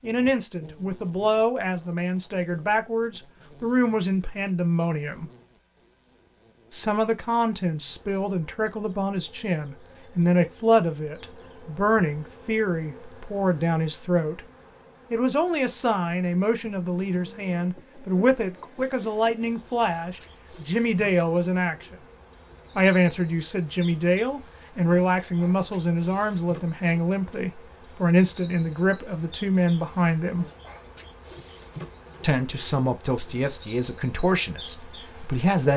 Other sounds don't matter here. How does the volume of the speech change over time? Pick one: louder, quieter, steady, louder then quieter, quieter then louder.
steady.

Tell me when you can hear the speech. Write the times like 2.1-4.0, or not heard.
0.0-5.3, 6.7-14.4, 15.1-21.9, 22.8-30.4, 32.2-35.7.